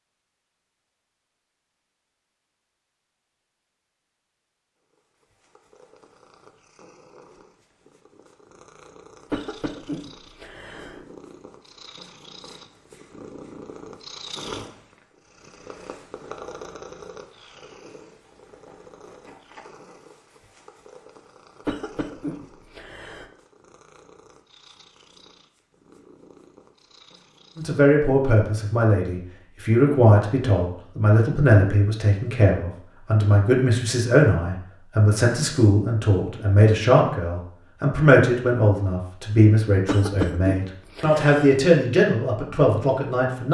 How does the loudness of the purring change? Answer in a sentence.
The volume of the purring goes up, then down.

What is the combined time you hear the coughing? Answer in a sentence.
You can hear the coughing for 5 seconds altogether.